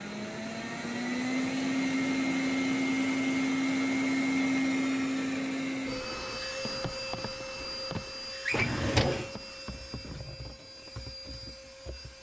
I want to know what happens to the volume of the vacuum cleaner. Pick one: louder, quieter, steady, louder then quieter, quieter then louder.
quieter.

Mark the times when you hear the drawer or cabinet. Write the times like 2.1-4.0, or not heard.
8.4-9.3.